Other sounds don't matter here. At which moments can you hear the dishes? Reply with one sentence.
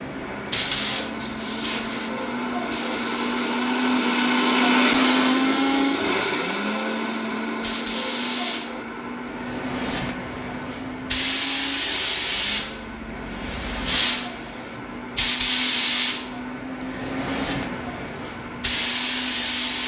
You can't hear the dishes here.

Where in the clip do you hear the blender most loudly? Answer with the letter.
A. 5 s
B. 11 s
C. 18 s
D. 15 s
A.